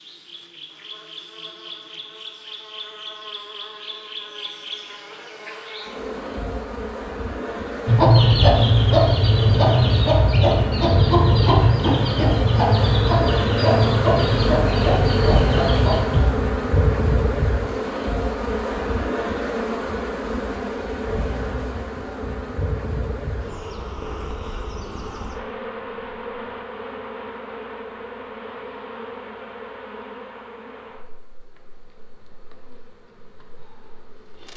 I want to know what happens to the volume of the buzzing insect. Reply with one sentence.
The volume of the buzzing insect goes up, then down.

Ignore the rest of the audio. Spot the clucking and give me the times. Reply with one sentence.
The clucking can be heard from 7.8 to 16.2 s.